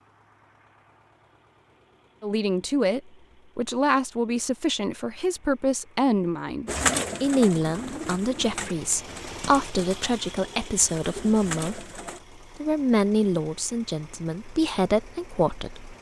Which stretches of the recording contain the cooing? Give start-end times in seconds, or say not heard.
6.7-12.2.